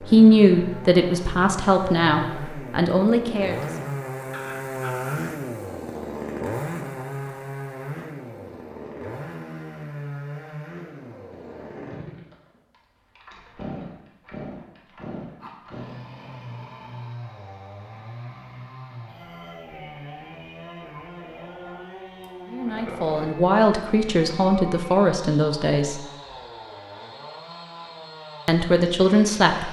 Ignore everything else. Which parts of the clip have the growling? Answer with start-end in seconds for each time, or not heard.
4.3-5.3, 15.4-17.1, 21.5-23.4.